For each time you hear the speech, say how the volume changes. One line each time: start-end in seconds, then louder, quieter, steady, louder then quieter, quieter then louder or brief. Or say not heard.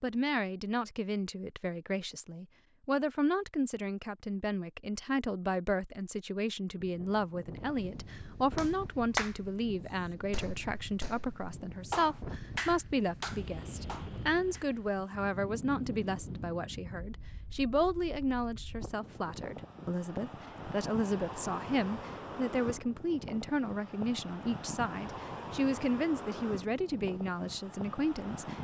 0.0-28.5 steady.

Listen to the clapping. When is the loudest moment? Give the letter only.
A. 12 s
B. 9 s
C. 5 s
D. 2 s
B.